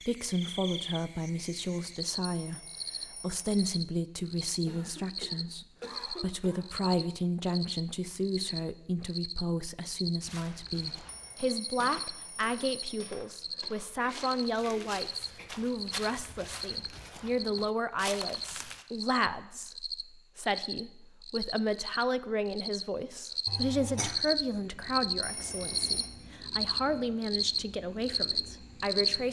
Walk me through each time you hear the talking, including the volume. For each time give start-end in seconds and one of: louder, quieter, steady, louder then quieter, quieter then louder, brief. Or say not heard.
0.1-29.2 steady.